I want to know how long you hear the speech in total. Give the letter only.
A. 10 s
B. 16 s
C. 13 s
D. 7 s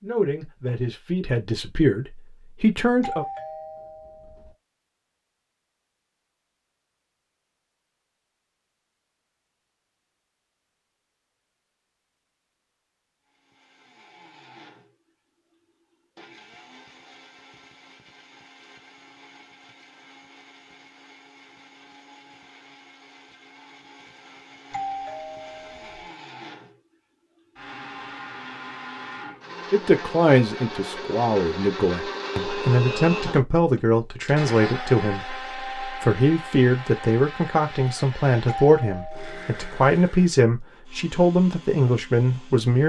B.